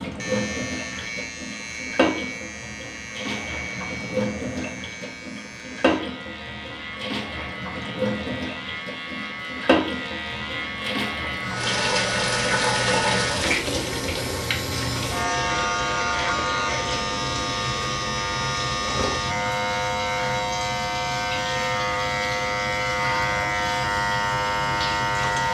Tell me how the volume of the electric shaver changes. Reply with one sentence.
The loudness of the electric shaver goes up.